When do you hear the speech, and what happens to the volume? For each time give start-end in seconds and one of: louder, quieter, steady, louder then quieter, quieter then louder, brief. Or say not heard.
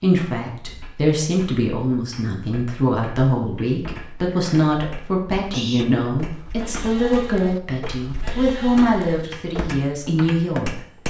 0.0-10.8 steady.